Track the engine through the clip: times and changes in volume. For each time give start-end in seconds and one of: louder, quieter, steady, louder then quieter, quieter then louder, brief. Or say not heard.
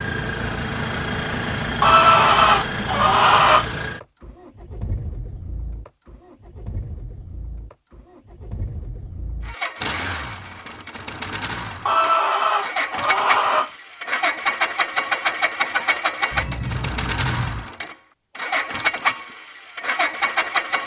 0.0-20.8 quieter then louder.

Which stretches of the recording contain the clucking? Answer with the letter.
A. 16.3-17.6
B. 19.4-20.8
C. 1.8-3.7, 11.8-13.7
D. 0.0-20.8
C.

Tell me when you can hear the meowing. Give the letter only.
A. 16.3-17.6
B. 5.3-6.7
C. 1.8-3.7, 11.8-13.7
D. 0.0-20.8
A.